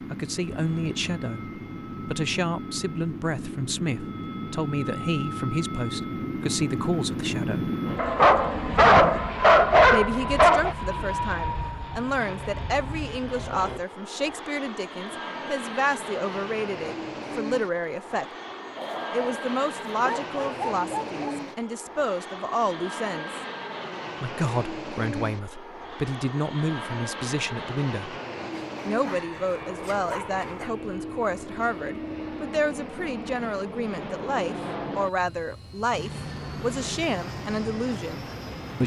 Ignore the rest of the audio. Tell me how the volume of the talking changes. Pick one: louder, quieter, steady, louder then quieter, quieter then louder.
steady.